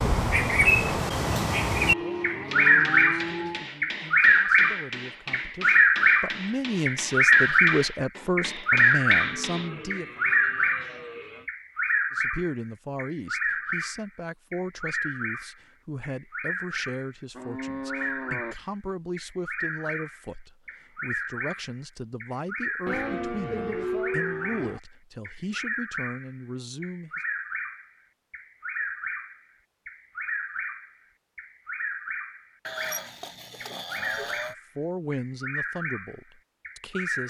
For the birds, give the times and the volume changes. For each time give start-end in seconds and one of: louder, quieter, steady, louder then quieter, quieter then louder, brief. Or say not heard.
0.0-37.2 quieter.